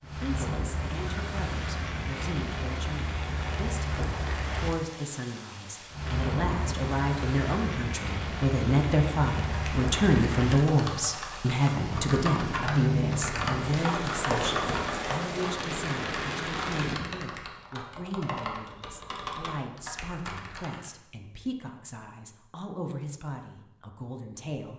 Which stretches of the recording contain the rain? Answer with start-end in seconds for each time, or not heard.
0.0-17.0.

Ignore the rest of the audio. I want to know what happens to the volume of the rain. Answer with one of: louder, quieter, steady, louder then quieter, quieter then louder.
steady.